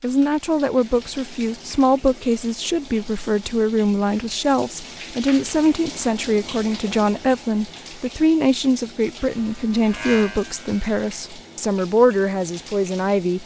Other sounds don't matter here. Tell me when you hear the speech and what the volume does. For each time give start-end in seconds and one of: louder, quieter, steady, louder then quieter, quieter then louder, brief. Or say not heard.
0.0-13.4 steady.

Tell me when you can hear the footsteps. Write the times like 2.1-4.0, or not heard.
not heard.